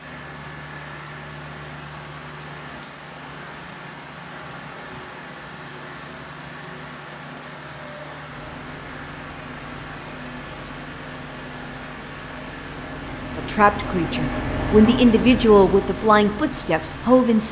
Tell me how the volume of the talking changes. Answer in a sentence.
The loudness of the talking goes up, then down.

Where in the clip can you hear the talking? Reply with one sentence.
You can hear the talking from 13.3 to 17.4 s.